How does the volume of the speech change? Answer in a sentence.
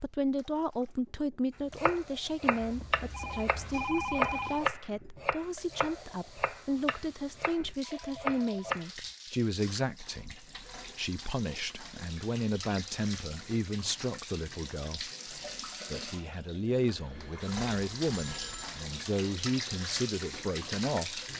The loudness of the speech stays about the same.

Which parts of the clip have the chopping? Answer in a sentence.
You can hear the chopping from 1.8 to 8.9 s.